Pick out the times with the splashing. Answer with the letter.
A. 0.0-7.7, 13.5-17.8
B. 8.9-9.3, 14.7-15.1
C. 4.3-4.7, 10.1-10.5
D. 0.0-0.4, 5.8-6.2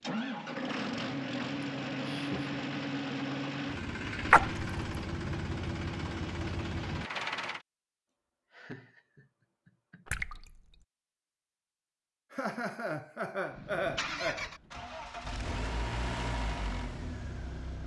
C.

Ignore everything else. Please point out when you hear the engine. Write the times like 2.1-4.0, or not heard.
0.0-7.7, 13.5-17.8.